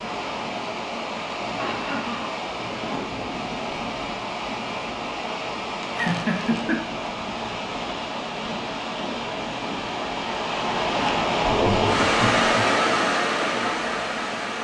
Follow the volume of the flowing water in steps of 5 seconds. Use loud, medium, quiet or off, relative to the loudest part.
medium, medium, loud.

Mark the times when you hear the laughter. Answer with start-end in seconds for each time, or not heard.
1.6-2.3, 5.9-6.8, 11.4-12.8.